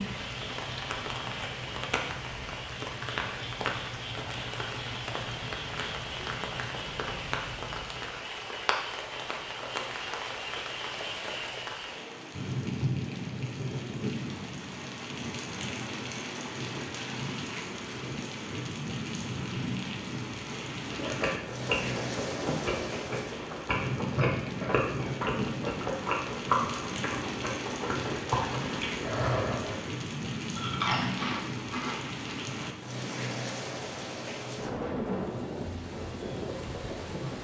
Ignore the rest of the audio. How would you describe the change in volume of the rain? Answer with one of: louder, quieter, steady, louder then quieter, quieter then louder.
steady.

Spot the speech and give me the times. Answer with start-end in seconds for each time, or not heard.
not heard.